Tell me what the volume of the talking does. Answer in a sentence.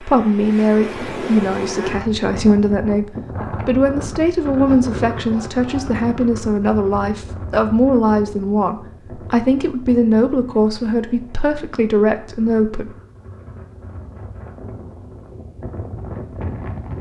The loudness of the talking stays about the same.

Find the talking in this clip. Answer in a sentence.
You can hear the talking from 0.0 to 3.0 s and from 3.6 to 12.9 s.